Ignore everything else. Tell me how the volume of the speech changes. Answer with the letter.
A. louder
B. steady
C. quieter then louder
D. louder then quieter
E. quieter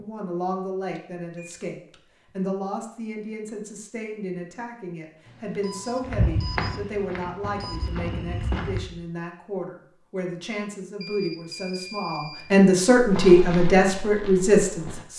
A.